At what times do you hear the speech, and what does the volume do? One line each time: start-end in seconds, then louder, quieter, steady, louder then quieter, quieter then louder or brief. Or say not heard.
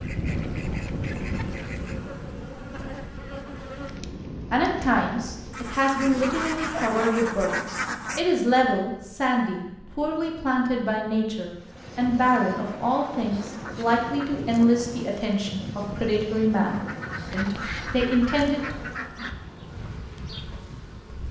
4.5-18.6 steady.